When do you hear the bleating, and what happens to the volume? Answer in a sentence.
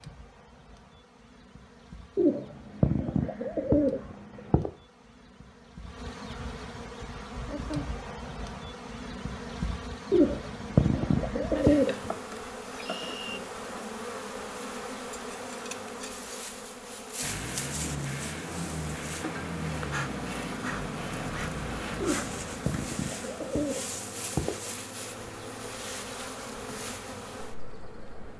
The bleating can't be heard in this clip.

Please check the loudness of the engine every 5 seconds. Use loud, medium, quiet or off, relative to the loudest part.
off, off, off, loud, loud, quiet.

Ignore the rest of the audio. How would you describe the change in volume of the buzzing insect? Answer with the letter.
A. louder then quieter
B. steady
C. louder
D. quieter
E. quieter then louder
C.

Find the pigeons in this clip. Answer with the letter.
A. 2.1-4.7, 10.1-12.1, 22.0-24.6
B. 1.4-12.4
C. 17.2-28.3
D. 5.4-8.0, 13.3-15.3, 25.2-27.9
A.